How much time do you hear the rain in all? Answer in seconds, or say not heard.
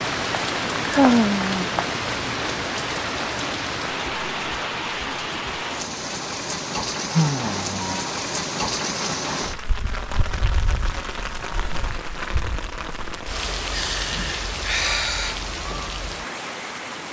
17 s.